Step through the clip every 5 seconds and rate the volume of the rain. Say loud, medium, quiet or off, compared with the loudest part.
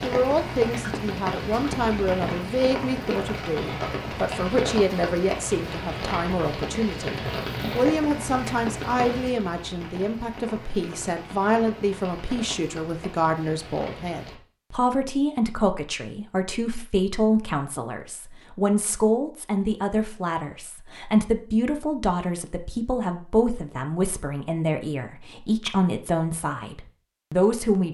loud, loud, medium, off, off, off.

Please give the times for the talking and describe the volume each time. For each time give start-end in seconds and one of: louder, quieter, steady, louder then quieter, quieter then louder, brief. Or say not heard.
0.0-27.8 steady.